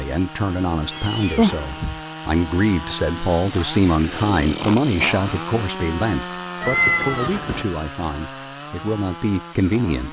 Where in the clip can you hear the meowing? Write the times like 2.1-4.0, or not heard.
0.9-2.0, 6.6-7.7.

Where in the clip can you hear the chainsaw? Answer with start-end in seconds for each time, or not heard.
0.0-10.0.